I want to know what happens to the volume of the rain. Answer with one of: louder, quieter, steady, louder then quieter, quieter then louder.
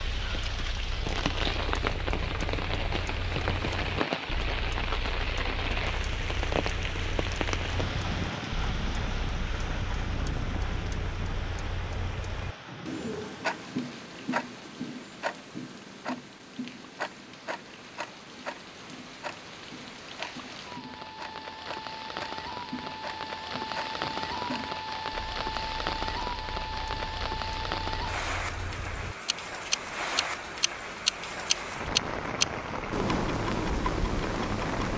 quieter then louder.